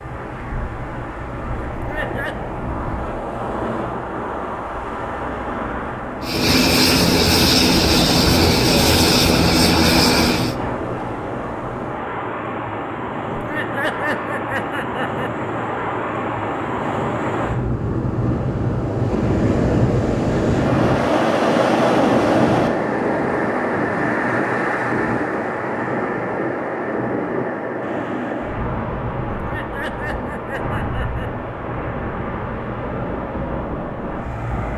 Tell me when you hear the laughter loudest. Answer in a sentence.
The volume of the laughter peaks at 14 seconds.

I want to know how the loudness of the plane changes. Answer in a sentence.
The volume of the plane stays about the same.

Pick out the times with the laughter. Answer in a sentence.
You can hear the laughter from 1.7 to 2.4 s, from 13.3 to 15.3 s and from 29.4 to 31.3 s.